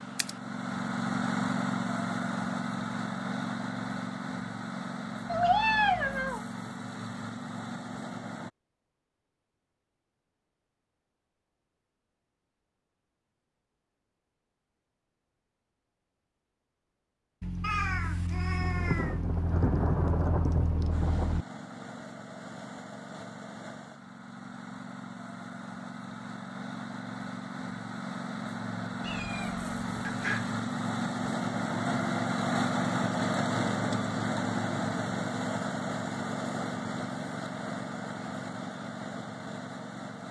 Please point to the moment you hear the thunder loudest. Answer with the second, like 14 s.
20 s.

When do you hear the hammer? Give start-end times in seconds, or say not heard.
not heard.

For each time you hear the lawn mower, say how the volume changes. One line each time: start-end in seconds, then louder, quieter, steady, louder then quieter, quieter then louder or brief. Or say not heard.
0.0-8.5 quieter
20.9-40.2 louder then quieter.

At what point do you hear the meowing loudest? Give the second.
6 s.